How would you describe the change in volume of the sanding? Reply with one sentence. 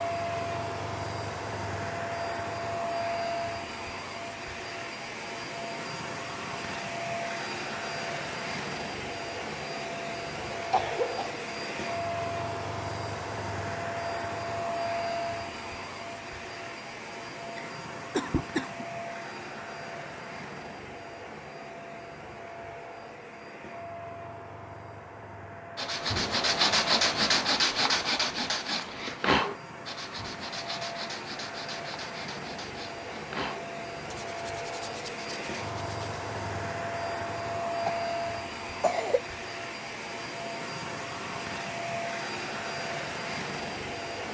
The loudness of the sanding goes down.